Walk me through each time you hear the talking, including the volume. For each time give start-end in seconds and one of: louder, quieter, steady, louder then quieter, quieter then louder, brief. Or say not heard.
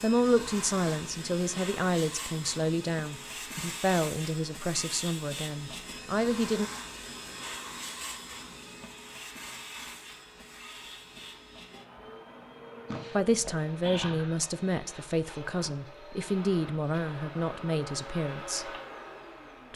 0.0-6.7 steady
13.2-18.7 steady.